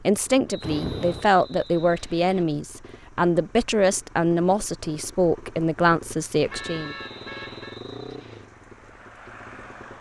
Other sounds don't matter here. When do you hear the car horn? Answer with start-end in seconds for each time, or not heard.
0.6-1.3, 6.5-7.8.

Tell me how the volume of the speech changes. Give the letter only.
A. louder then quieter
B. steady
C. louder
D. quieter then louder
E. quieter
B.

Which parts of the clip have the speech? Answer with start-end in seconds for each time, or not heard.
0.1-7.0.